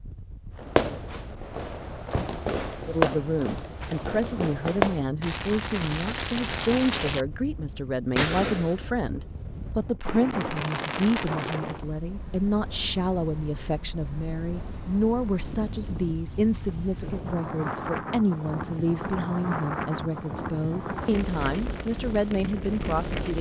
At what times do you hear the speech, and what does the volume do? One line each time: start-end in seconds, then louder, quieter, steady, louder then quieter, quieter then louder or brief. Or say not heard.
2.9-23.3 steady.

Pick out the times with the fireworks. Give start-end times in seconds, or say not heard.
0.6-11.8.